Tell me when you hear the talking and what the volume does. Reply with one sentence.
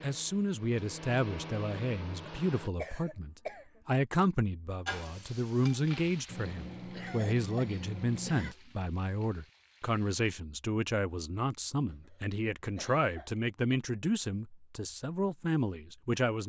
The talking can be heard from 0.0 to 16.4 s, at a steady volume.